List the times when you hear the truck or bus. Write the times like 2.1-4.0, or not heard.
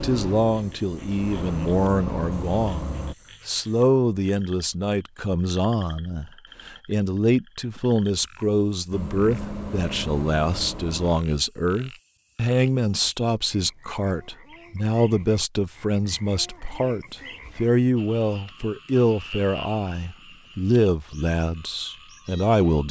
0.0-3.1, 8.9-11.2.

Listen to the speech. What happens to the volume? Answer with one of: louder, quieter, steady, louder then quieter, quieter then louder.
steady.